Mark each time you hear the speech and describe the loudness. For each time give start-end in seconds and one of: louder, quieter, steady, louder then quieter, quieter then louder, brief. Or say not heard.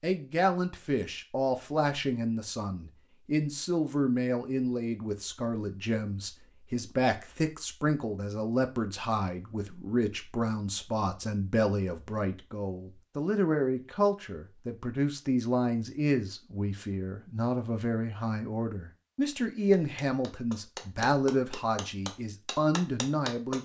0.0-23.6 steady.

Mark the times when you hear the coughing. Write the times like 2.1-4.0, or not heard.
not heard.